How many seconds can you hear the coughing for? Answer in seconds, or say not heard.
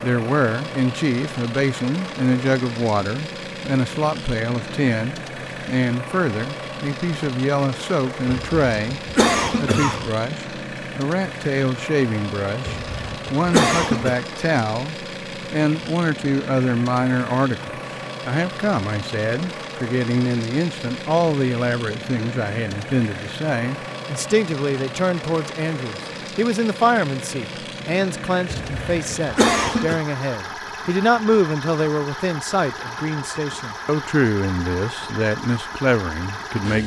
5 s.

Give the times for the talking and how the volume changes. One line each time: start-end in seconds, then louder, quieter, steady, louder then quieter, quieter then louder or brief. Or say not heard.
0.0-36.8 steady.